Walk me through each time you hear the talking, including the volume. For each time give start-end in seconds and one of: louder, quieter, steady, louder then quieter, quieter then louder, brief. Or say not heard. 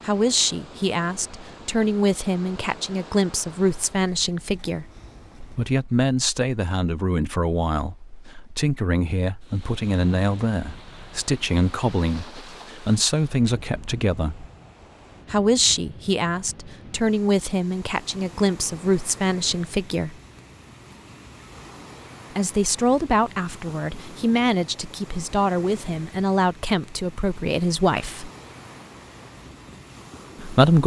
0.1-4.8 steady
5.5-14.4 steady
15.3-20.1 steady
22.4-28.3 steady
30.4-30.8 brief.